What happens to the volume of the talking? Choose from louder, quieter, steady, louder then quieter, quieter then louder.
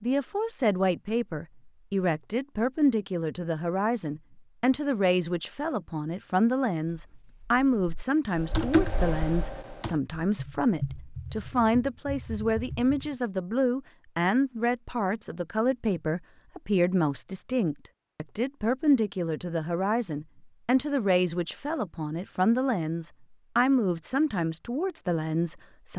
steady.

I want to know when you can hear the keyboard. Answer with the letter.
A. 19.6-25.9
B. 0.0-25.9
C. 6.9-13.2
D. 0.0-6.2
C.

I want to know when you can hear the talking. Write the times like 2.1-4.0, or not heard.
0.0-25.9.